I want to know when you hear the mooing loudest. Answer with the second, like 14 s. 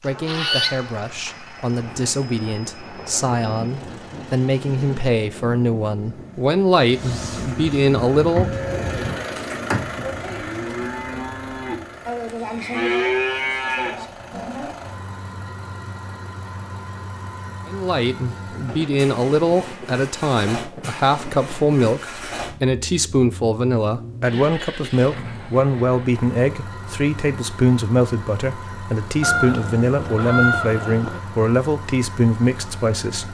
13 s.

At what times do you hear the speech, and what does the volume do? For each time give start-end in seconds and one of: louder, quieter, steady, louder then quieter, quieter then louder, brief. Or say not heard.
0.0-8.5 louder
17.6-33.2 steady.